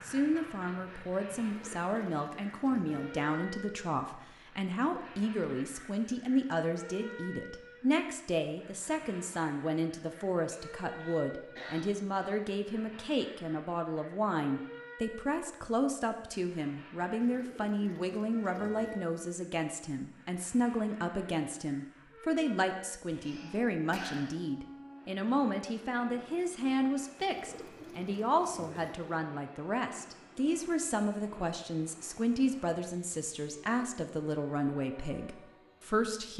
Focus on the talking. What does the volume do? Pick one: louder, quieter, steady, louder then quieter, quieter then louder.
steady.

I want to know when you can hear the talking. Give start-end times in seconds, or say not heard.
0.0-36.3.